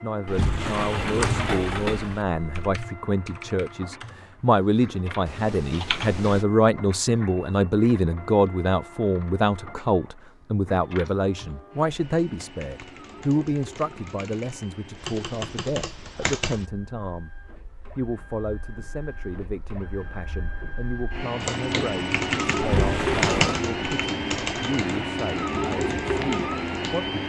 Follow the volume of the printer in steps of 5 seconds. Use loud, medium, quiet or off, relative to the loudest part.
quiet, quiet, quiet, quiet, loud, loud.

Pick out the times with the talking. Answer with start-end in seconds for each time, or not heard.
0.0-17.4, 17.9-27.2.